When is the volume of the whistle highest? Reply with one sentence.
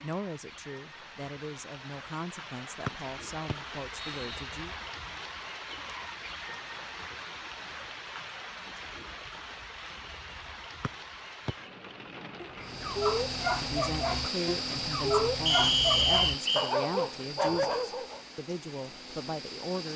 The loudest moment of the whistle is at 16 seconds.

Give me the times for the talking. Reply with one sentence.
The talking can be heard from 0.0 to 4.8 s and from 13.6 to 19.9 s.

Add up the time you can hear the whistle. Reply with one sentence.
You can hear the whistle for 4 seconds altogether.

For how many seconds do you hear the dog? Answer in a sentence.
You can hear the dog for 6 seconds altogether.